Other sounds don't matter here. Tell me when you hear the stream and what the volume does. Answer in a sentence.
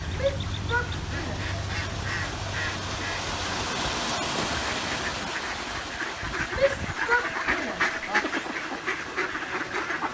The stream can be heard from 0.0 to 10.0 s, getting louder then quieter.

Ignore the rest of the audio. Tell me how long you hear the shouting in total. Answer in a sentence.
You can hear the shouting for 3 seconds altogether.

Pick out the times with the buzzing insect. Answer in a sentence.
The buzzing insect can't be heard in this clip.